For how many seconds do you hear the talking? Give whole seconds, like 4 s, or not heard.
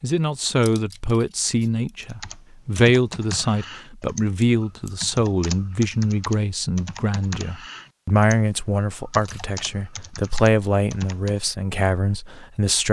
13 s.